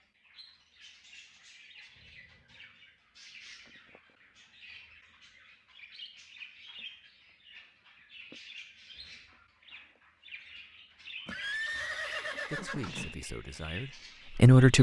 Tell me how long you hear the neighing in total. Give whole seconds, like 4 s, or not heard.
2 s.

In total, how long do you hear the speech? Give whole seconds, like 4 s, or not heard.
2 s.